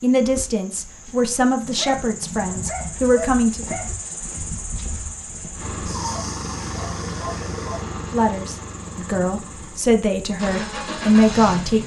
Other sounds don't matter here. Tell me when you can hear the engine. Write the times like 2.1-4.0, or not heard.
5.5-11.8.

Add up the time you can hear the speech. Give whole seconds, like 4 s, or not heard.
7 s.